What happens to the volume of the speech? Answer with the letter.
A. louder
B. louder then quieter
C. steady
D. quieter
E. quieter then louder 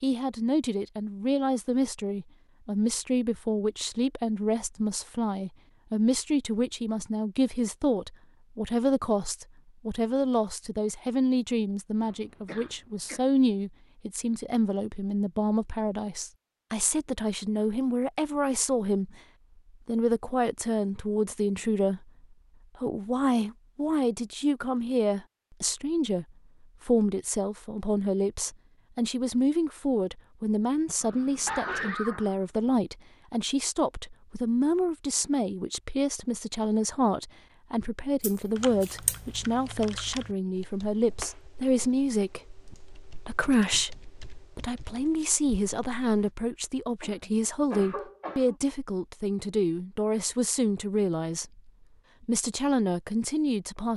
C.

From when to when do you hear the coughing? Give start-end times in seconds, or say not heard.
12.0-13.2, 31.0-32.4, 47.0-48.5.